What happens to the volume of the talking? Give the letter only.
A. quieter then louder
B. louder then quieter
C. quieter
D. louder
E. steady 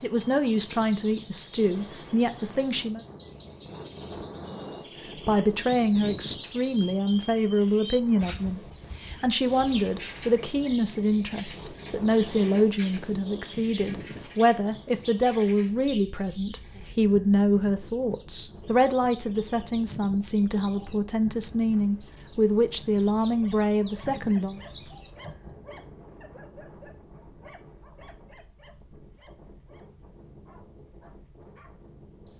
E.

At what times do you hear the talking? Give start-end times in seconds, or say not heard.
0.0-3.0, 5.2-24.6.